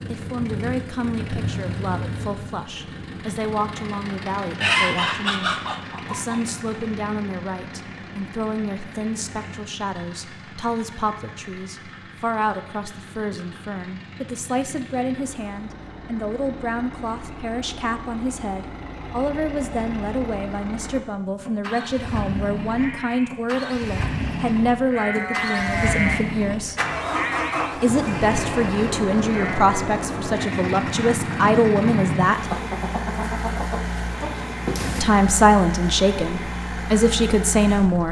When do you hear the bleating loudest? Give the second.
26 s.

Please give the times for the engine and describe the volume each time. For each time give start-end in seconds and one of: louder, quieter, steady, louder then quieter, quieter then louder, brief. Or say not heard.
0.0-38.0 quieter then louder.